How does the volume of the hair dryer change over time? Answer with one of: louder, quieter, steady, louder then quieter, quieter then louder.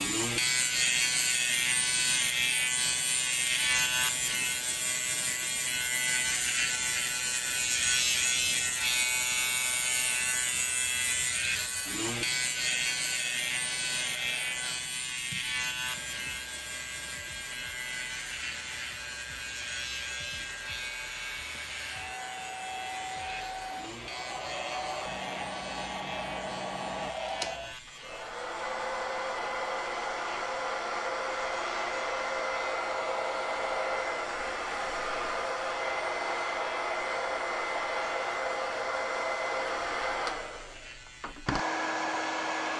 louder.